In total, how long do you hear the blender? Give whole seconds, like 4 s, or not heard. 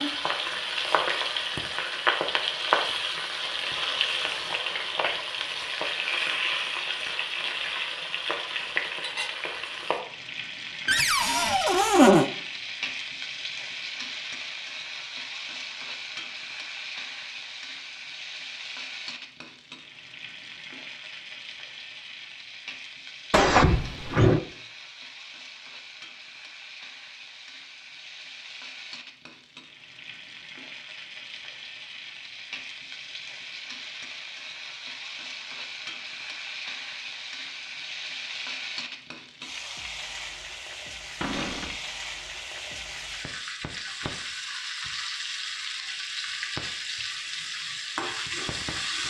not heard.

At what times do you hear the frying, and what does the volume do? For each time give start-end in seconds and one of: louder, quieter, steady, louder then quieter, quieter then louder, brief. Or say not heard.
0.0-49.0 quieter then louder.